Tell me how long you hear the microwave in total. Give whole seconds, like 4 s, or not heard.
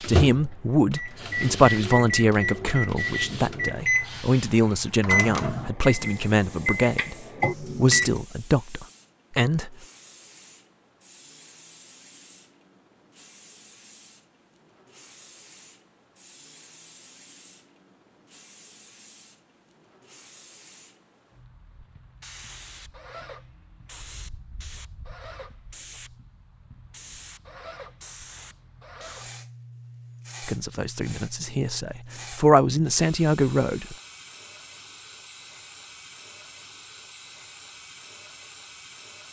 8 s.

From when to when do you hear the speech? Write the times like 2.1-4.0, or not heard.
0.1-9.8, 30.4-34.0.